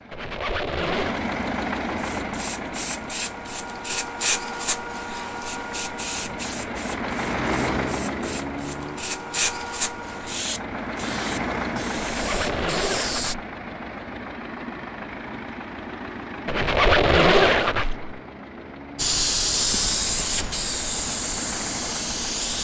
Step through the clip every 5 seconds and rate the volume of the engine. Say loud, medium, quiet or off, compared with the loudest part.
loud, loud, loud, medium, medium.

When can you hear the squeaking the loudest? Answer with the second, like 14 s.
17 s.